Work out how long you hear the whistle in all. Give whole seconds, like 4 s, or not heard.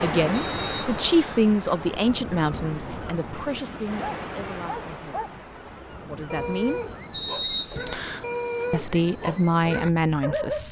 2 s.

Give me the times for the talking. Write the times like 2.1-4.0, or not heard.
0.0-6.8, 8.7-10.6.